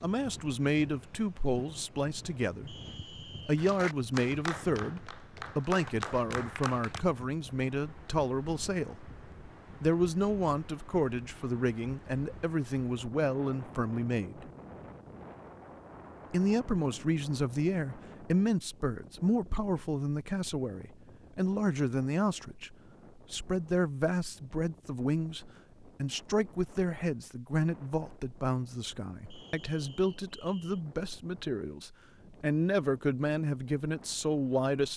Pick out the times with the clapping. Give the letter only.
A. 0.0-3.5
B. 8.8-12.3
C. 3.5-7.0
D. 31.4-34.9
C.